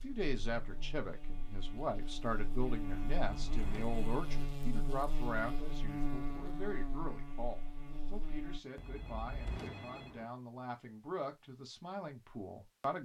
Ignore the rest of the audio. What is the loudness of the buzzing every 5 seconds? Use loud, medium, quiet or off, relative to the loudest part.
loud, loud, off.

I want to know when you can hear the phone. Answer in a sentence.
The phone can be heard from 3.1 to 4.4 s and from 8.8 to 10.2 s.